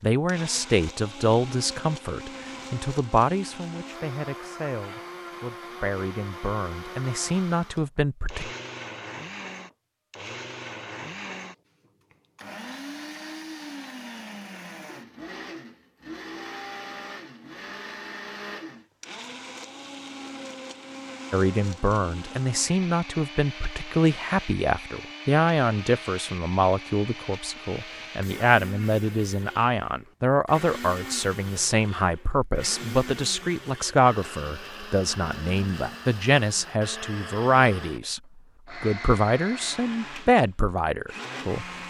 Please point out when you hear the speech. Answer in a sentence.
The speech can be heard from 0.0 to 8.5 s, from 21.3 to 38.2 s and from 38.8 to 41.8 s.